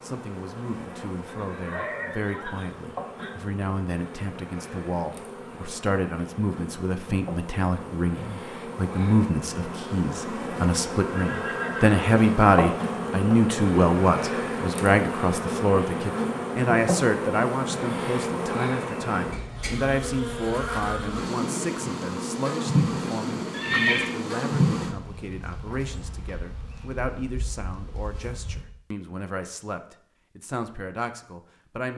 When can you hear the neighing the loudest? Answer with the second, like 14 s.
24 s.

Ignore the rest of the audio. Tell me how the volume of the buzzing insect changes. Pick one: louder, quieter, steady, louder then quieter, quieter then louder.
louder.